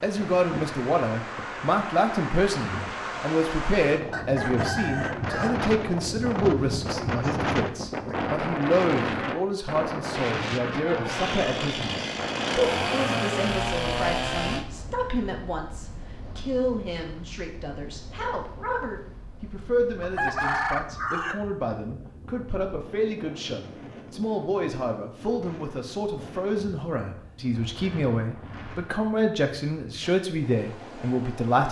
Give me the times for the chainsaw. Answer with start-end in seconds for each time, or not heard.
11.1-14.7.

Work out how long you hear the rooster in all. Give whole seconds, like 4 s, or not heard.
3 s.